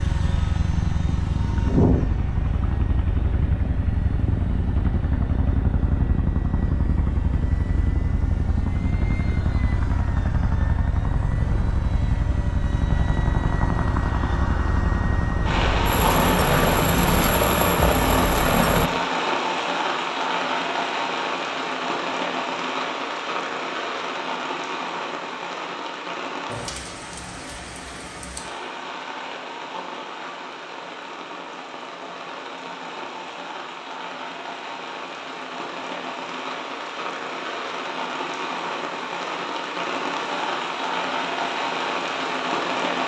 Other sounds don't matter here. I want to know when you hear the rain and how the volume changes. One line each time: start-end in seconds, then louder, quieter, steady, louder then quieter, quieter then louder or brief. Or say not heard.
15.4-43.0 quieter then louder.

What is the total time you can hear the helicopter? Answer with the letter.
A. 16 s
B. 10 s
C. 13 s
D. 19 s
D.